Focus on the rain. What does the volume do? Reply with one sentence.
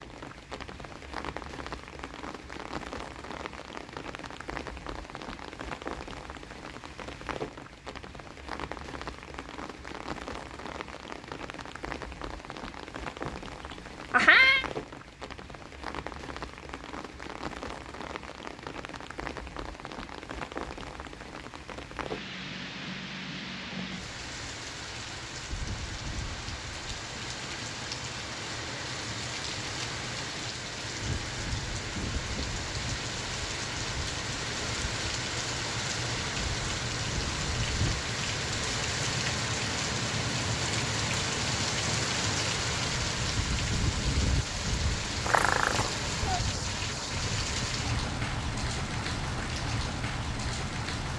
The loudness of the rain goes up.